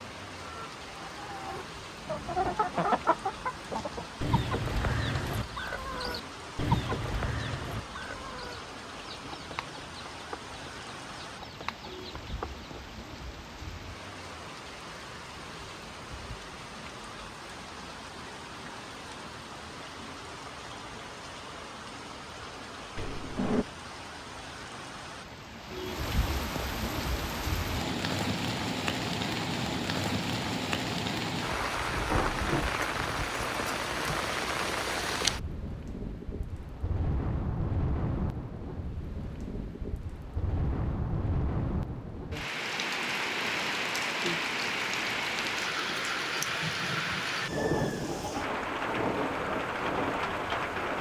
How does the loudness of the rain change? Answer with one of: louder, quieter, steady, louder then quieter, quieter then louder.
louder.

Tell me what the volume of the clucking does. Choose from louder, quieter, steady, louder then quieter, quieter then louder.
quieter.